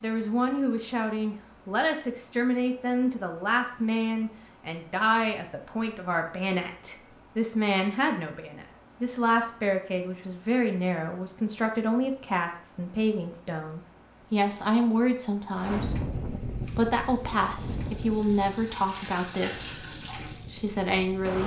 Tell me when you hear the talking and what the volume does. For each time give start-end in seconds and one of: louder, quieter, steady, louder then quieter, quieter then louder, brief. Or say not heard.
0.0-21.4 steady.